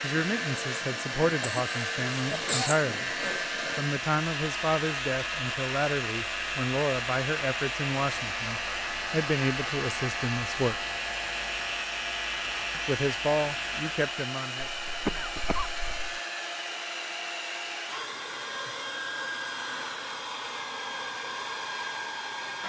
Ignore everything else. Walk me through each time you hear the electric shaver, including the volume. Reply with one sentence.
The electric shaver can be heard from 0.0 to 14.1 s, at a steady volume.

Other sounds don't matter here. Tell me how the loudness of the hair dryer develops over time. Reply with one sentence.
The loudness of the hair dryer stays about the same.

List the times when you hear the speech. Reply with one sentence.
The speech can be heard from 0.0 to 3.1 s, from 3.8 to 10.8 s and from 12.7 to 14.7 s.